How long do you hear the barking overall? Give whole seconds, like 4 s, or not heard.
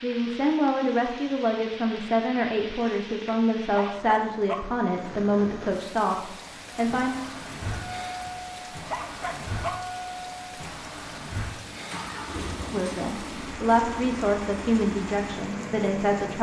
2 s.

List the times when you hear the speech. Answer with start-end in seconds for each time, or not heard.
0.0-7.2, 12.7-16.3.